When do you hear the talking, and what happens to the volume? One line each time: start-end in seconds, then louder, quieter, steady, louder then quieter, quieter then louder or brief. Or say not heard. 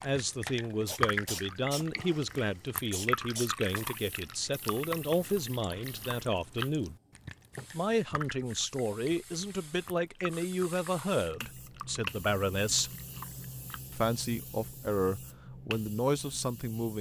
0.0-7.0 steady
7.7-12.9 steady
13.9-16.9 brief.